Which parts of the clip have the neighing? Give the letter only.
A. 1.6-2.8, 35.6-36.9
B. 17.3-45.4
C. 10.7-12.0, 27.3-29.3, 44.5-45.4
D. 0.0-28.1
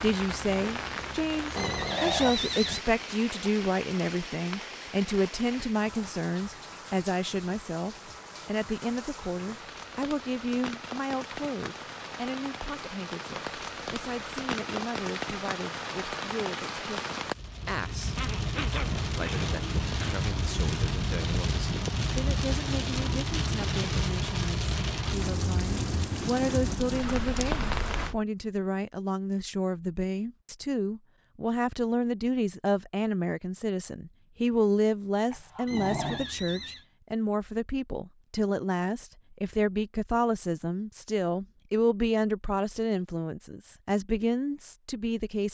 A.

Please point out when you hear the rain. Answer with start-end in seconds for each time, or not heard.
0.0-28.1.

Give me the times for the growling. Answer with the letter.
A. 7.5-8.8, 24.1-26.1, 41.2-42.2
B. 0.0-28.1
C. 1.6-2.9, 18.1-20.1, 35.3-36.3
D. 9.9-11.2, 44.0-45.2
C.